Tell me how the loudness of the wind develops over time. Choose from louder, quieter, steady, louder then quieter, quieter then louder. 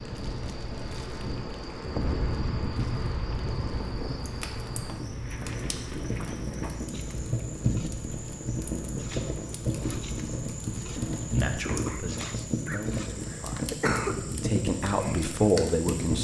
quieter.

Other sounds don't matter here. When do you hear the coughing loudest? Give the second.
14 s.